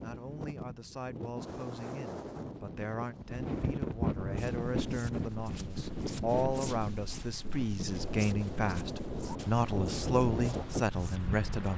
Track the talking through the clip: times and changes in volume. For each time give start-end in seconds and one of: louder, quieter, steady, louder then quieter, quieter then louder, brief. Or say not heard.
0.0-11.7 louder.